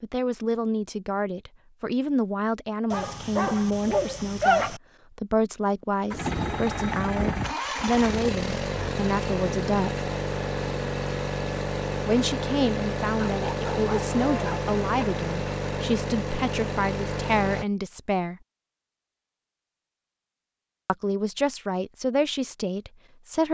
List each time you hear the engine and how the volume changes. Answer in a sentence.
The engine can be heard from 6.1 to 17.6 s, at a steady volume.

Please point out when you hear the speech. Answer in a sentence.
The speech can be heard from 0.0 to 10.1 s, from 12.1 to 18.4 s and from 20.9 to 23.4 s.